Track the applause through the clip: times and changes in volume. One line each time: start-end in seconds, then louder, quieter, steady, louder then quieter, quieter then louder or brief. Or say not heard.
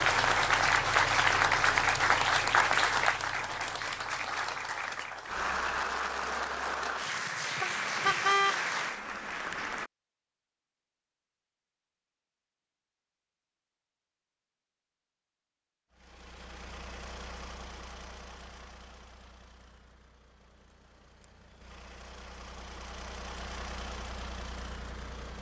0.0-9.9 quieter.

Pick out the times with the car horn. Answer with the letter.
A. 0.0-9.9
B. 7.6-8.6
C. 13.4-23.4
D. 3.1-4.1
B.